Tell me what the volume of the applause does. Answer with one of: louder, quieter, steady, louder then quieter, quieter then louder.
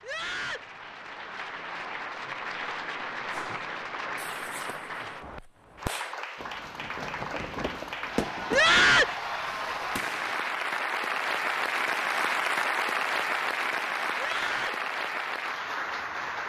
louder.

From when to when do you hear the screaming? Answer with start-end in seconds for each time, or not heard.
0.0-0.7, 8.5-9.2, 14.2-14.8.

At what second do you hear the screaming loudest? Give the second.
9 s.